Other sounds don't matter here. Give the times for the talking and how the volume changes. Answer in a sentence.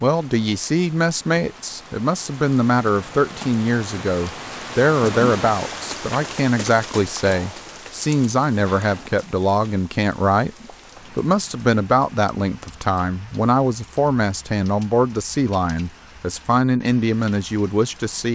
You can hear the talking from 0.0 to 18.3 s, at a steady volume.